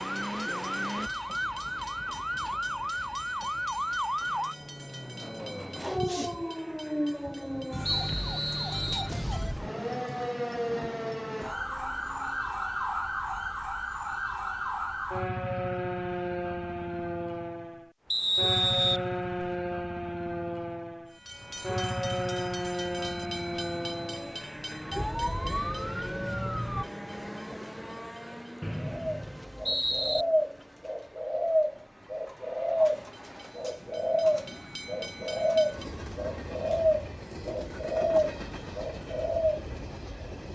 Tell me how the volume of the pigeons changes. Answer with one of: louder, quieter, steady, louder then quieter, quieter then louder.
steady.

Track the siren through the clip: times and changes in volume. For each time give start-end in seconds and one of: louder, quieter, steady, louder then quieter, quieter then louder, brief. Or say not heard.
0.0-26.9 steady.